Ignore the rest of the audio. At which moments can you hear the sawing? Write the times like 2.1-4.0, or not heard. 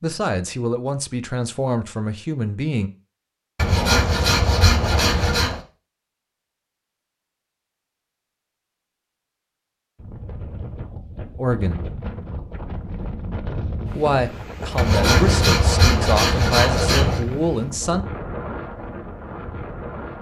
3.5-5.6, 14.8-17.2.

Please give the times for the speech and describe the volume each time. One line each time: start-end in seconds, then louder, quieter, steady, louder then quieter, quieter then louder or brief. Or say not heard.
0.0-2.9 brief
11.3-11.8 brief
13.9-18.1 steady.